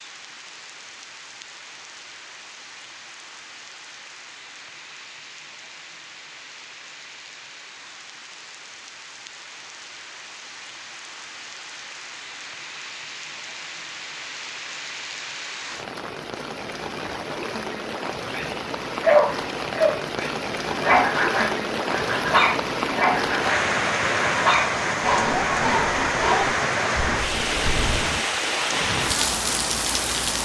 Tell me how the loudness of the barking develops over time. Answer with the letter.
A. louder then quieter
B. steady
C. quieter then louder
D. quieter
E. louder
D.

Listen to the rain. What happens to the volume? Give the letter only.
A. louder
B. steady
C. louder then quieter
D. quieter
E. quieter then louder
A.